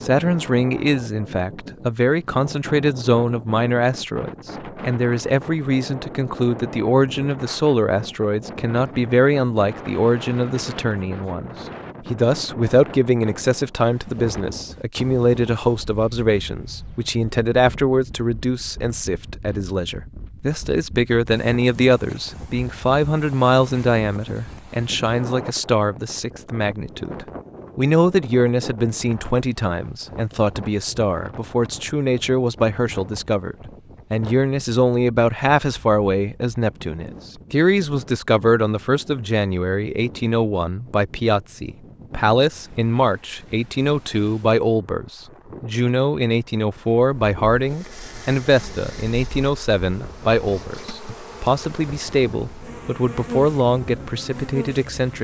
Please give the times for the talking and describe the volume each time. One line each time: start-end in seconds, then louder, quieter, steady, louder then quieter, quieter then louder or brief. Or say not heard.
0.0-55.1 steady.